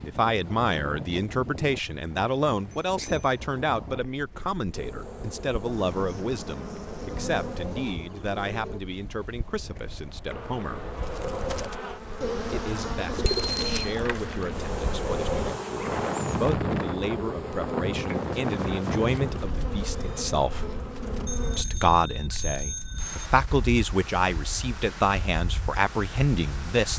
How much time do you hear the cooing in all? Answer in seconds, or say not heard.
2 s.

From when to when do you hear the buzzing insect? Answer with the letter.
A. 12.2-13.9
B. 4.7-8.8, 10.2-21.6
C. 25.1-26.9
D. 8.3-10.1
B.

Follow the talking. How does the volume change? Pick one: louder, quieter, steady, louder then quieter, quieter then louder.
quieter then louder.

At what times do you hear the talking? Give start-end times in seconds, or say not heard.
0.0-10.9, 12.5-20.7, 21.6-26.9.